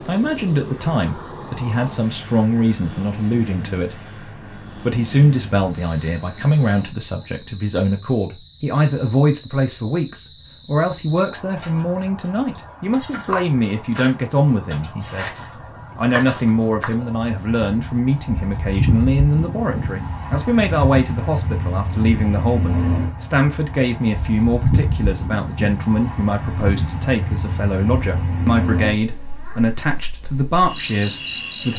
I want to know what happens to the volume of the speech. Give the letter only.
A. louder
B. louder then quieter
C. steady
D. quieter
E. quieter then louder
C.